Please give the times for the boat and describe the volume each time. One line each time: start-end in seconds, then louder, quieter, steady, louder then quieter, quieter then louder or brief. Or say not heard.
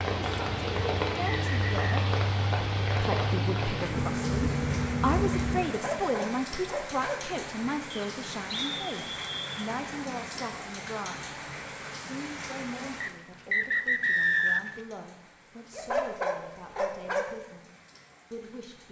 0.0-5.7 louder.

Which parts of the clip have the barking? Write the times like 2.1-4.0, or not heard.
5.7-7.2, 15.8-17.2.